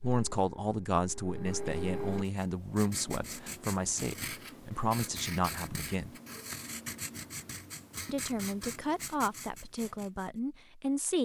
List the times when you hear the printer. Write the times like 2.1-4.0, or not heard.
0.0-2.2.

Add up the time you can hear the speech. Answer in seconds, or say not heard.
9 s.